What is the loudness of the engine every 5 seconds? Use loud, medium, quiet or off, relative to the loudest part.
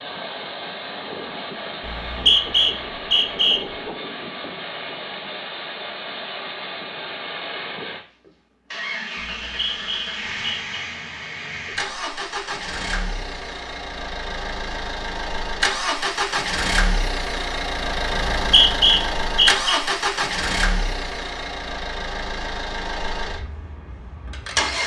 medium, medium, medium, loud, loud.